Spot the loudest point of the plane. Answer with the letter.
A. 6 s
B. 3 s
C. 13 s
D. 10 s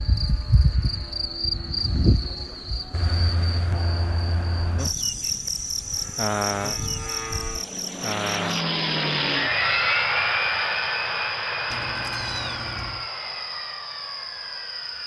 D.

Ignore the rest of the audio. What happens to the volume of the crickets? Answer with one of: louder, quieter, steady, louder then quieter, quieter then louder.
quieter.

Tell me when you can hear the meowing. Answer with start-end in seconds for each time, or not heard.
11.7-13.1.